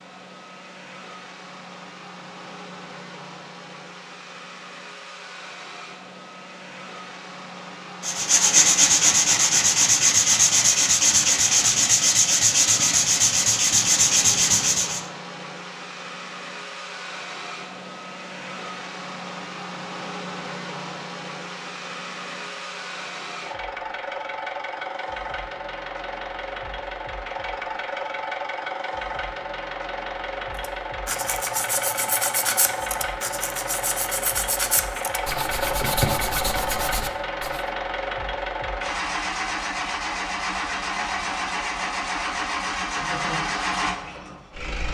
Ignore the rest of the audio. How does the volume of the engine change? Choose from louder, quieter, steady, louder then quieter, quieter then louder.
louder.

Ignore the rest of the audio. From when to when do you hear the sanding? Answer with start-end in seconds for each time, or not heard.
8.0-15.1, 30.6-37.6.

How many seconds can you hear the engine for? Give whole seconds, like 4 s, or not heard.
45 s.